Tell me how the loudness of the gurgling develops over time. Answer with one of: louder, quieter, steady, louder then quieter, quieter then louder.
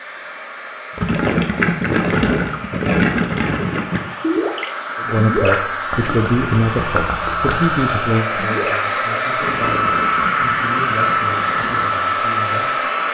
quieter.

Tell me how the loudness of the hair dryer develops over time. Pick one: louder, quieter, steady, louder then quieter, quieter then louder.
louder.